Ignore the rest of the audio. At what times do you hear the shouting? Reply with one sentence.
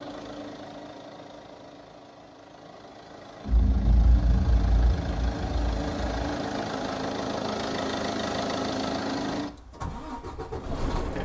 The shouting can't be heard in this clip.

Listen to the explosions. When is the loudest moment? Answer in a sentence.
The loudest moment of the explosions is at 4 seconds.